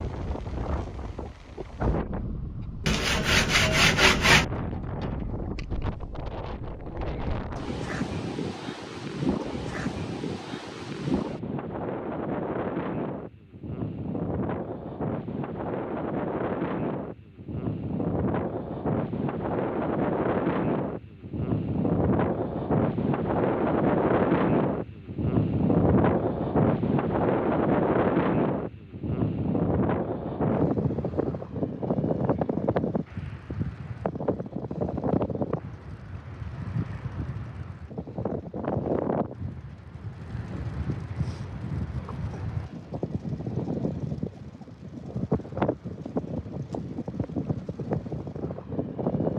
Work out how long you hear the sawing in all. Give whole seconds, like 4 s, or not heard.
2 s.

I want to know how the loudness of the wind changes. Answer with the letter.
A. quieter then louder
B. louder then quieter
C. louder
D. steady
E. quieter
B.